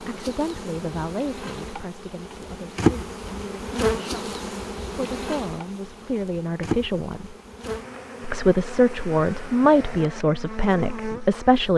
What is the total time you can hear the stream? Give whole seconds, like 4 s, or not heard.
not heard.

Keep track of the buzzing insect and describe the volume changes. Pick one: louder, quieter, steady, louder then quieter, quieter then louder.
louder then quieter.